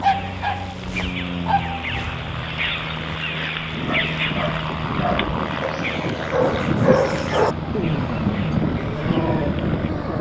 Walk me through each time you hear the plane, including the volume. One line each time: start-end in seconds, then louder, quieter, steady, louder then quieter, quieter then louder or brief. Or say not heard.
0.0-10.1 louder.